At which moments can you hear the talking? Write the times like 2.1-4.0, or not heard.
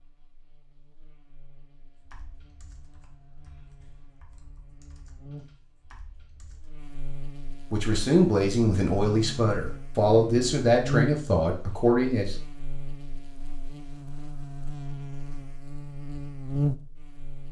7.7-12.3.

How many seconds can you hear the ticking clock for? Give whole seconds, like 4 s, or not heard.
not heard.